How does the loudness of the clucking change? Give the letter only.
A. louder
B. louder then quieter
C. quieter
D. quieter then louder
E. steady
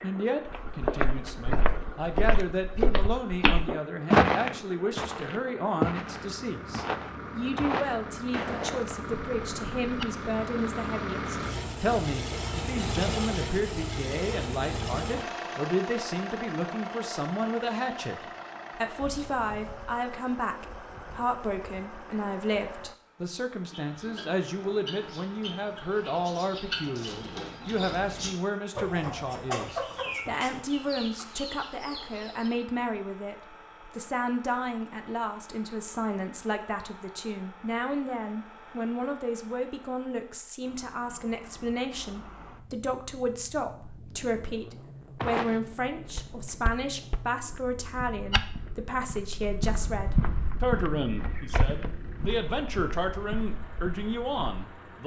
B.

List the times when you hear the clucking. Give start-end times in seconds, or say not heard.
23.7-32.5.